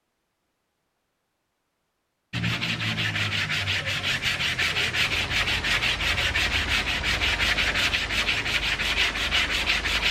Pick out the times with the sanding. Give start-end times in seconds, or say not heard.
2.3-10.0.